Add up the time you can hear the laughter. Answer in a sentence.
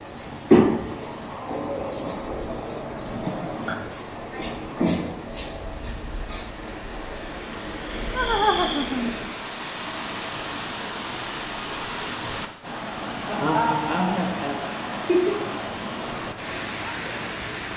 You can hear the laughter for 4 seconds altogether.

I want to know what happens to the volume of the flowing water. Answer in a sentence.
The volume of the flowing water goes up.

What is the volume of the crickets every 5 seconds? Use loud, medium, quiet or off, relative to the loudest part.
loud, medium, off, off.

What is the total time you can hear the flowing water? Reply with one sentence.
The flowing water can be heard for 18 seconds in total.